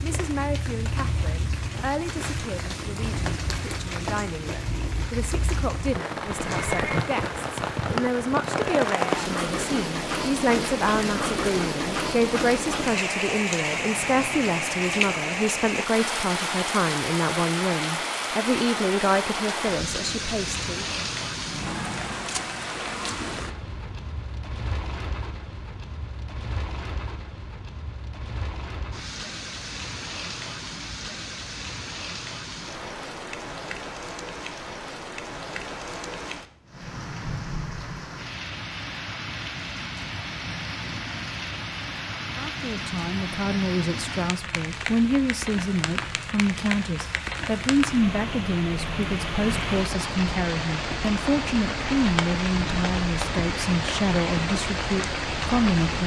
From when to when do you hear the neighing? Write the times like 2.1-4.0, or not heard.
6.2-7.0.